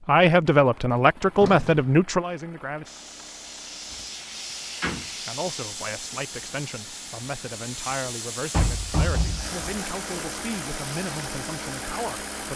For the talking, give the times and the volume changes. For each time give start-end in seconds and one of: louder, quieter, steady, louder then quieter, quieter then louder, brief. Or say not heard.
0.1-2.9 brief
5.2-12.5 steady.